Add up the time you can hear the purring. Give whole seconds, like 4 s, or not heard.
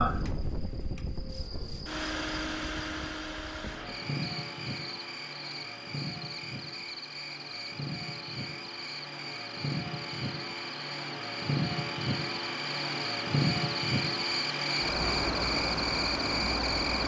not heard.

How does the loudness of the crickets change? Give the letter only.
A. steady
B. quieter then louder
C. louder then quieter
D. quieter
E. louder
E.